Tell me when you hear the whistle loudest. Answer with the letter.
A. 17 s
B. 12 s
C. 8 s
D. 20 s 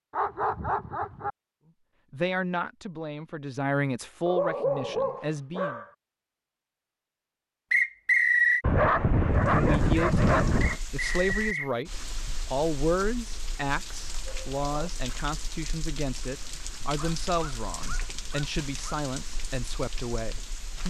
C.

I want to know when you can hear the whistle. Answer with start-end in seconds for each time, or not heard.
7.7-8.6, 10.6-11.7.